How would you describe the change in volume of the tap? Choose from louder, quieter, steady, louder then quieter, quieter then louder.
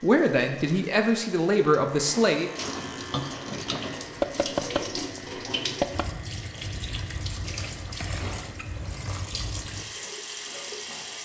louder.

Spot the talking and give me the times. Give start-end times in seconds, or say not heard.
0.0-2.5.